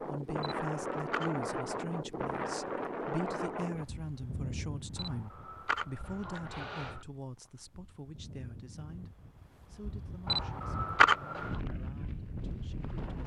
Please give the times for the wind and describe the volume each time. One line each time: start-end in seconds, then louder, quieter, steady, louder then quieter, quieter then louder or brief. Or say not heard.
0.0-13.2 quieter then louder.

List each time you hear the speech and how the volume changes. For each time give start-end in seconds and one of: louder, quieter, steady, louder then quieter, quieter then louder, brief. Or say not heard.
0.0-13.2 quieter.